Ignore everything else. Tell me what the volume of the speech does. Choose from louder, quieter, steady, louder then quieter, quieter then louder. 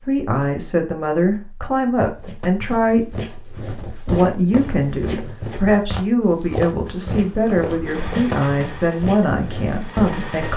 steady.